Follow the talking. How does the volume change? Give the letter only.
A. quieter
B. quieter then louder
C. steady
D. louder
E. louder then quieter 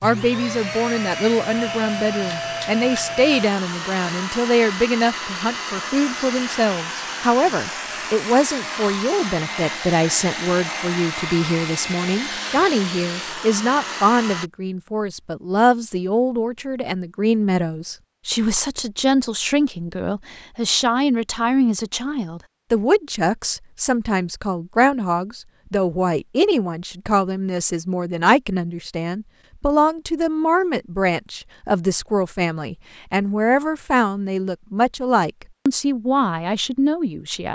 C.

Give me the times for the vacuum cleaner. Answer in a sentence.
The vacuum cleaner can be heard from 0.0 to 14.5 s.